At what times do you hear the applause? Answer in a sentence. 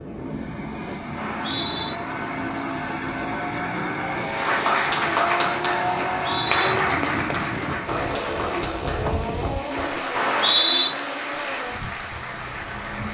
The applause can be heard from 4.3 to 13.0 s.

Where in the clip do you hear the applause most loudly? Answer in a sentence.
The loudest moment of the applause is at 5 seconds.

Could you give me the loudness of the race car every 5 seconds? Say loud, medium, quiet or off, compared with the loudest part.
loud, loud, medium.